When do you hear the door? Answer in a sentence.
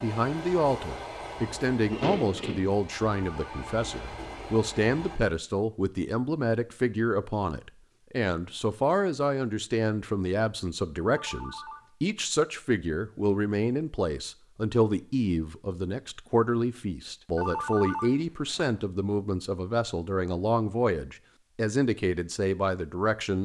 The door can be heard from 1.9 to 2.7 s.